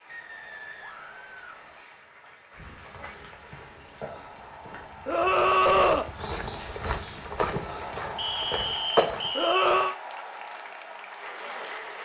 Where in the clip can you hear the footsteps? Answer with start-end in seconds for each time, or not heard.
2.5-9.3.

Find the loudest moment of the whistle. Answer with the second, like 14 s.
9 s.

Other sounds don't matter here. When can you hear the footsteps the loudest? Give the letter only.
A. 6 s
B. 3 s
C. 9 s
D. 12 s
C.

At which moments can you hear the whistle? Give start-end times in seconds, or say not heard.
0.1-1.9, 8.2-9.6.